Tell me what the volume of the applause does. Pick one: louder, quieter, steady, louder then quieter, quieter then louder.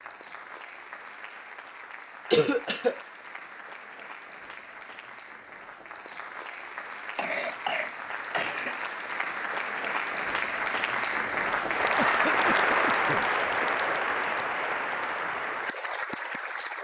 louder.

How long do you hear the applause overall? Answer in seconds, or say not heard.
17 s.